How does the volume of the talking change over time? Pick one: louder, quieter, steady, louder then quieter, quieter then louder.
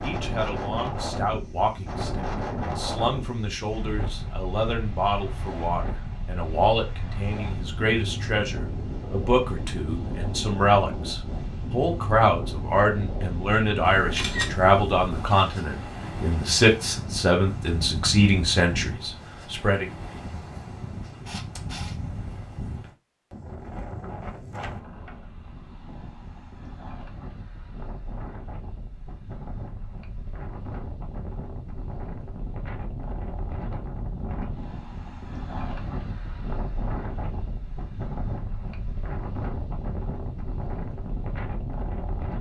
louder.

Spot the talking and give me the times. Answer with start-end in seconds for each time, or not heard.
0.0-19.9.